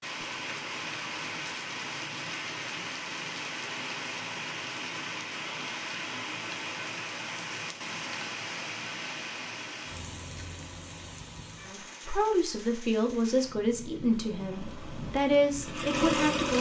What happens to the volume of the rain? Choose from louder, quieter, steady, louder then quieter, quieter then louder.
quieter.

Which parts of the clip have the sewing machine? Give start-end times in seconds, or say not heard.
14.2-16.5.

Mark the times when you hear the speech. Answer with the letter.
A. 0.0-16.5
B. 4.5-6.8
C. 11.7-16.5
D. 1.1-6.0
C.